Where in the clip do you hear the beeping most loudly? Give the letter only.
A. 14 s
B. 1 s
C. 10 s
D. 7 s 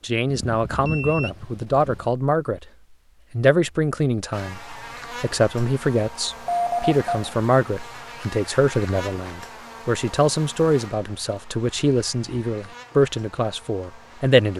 D.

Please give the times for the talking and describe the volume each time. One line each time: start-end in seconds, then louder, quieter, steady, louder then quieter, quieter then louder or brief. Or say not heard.
0.0-2.6 brief
3.3-14.5 steady.